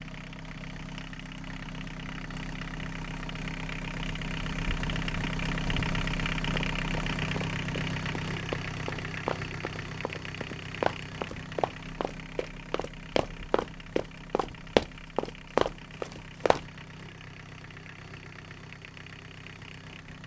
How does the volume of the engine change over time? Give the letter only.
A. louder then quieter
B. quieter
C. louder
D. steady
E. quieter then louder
A.